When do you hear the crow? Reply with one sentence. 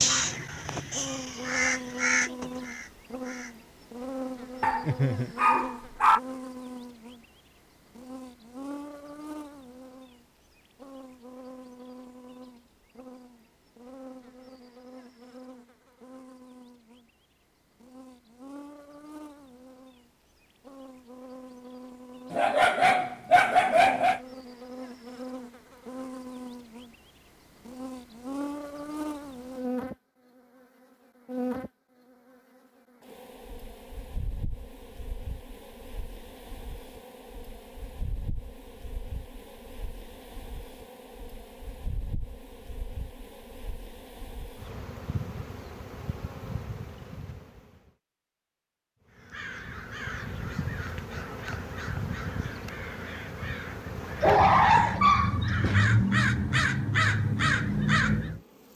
You can hear the crow from 0.0 to 3.5 s and from 49.1 to 58.4 s.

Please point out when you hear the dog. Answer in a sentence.
The dog can be heard from 4.6 to 6.2 s, from 22.3 to 24.2 s and from 54.2 to 55.9 s.